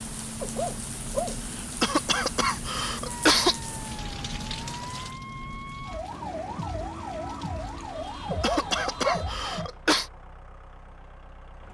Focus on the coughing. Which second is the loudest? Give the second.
3 s.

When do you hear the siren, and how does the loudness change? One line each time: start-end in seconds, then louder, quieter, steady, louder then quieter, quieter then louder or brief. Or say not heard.
3.0-9.7 louder.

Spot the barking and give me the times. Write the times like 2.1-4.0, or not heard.
0.4-1.4, 8.3-9.3.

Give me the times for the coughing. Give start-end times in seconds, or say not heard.
1.6-3.5, 8.2-10.1.